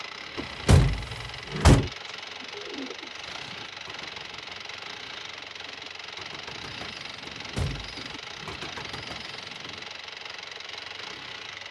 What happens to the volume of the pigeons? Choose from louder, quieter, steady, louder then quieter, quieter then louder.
quieter then louder.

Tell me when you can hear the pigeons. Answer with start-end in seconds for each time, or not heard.
2.0-9.9.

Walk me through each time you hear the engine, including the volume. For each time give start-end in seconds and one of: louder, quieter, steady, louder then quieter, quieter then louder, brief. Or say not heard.
0.0-11.6 steady.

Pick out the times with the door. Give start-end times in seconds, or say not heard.
0.3-1.9, 7.2-8.6.